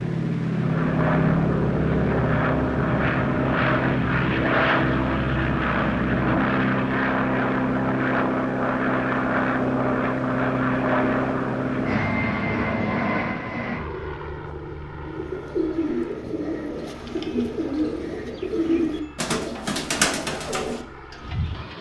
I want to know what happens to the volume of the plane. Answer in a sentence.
The volume of the plane goes down.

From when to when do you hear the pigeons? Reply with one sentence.
The pigeons can be heard from 15.1 to 21.7 s.